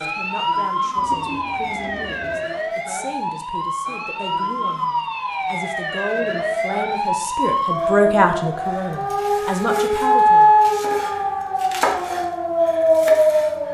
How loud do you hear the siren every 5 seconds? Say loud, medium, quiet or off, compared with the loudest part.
medium, medium, loud.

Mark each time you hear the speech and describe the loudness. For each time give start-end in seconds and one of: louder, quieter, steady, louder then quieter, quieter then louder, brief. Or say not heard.
0.0-10.5 louder.